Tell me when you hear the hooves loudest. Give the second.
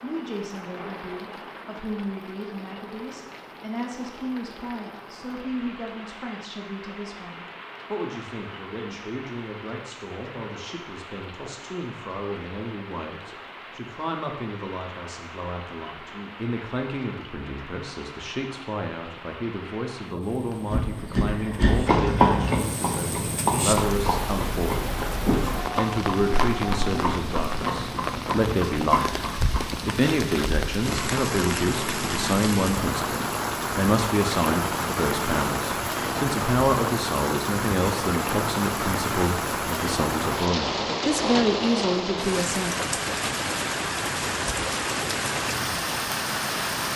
22 s.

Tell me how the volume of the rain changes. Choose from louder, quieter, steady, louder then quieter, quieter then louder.
louder.